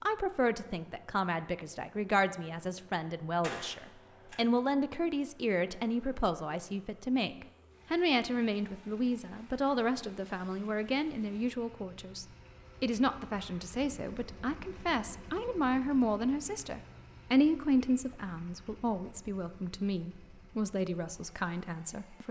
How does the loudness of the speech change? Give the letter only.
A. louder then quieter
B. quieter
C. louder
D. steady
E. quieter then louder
D.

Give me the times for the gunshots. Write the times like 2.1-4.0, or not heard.
3.4-4.3.